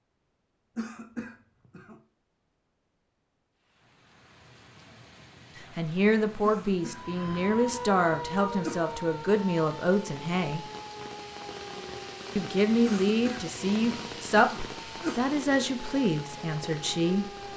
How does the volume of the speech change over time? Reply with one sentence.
The volume of the speech stays about the same.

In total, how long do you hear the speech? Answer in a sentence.
The speech can be heard for 10 seconds in total.